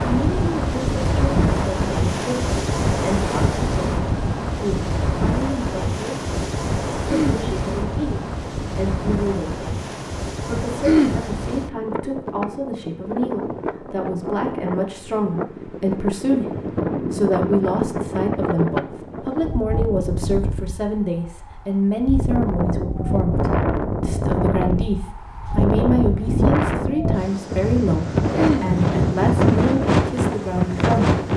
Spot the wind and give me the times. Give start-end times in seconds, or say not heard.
0.0-31.3.